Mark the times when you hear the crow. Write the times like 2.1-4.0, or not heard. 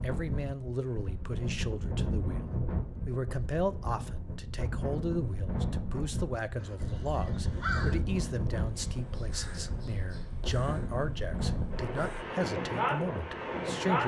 6.5-12.2.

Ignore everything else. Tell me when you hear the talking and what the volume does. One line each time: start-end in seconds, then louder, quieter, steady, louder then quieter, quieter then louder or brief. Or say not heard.
0.0-14.0 steady.